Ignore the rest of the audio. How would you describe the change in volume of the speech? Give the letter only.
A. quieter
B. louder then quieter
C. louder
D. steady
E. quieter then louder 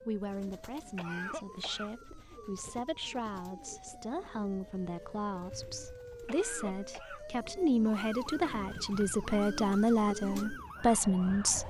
C.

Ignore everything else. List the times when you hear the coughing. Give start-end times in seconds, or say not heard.
0.9-1.9, 6.2-7.2.